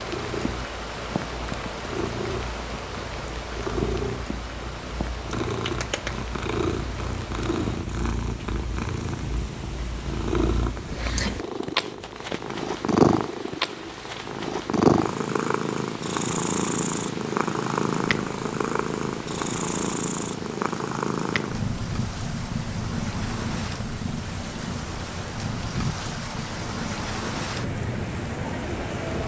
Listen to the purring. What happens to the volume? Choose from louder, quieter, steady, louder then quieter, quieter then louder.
louder then quieter.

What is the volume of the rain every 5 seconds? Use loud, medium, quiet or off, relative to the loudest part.
loud, medium, medium, medium, medium, loud.